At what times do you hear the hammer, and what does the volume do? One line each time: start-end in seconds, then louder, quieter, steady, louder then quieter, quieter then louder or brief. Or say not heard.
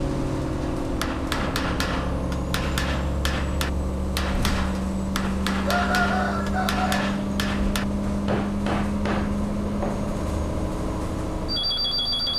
0.8-10.1 steady.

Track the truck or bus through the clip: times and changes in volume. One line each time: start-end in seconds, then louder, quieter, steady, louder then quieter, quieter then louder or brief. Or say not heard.
0.0-12.3 steady.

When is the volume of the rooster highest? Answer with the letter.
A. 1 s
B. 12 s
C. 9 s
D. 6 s
D.